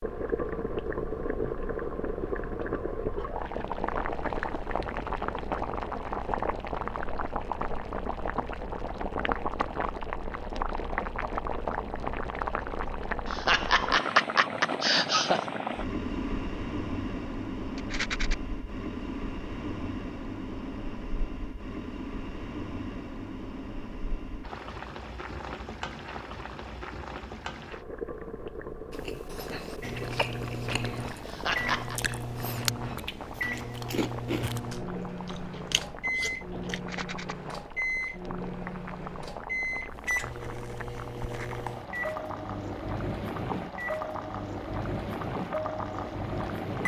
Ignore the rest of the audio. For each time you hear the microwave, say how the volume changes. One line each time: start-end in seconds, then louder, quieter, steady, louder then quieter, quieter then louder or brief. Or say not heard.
29.8-46.8 steady.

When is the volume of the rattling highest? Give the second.
18 s.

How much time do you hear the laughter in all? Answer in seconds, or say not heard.
3 s.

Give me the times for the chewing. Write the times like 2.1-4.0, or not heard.
28.9-36.8.